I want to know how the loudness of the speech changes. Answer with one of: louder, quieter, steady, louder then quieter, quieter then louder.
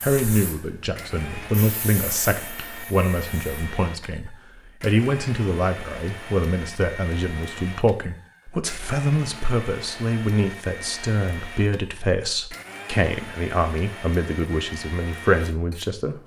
steady.